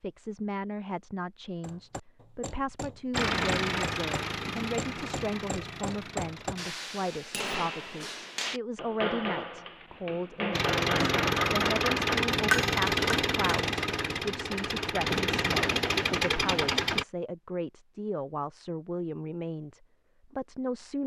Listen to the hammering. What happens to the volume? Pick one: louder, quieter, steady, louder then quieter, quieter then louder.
louder.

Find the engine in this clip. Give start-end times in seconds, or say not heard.
3.1-6.8, 10.5-17.1.